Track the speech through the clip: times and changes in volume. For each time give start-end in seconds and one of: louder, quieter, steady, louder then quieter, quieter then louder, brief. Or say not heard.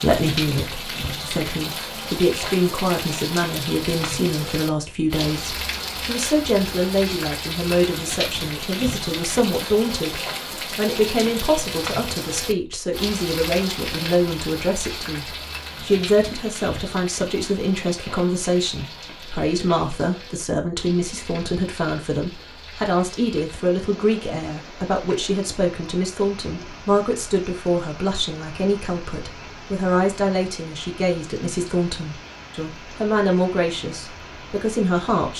0.0-35.3 steady.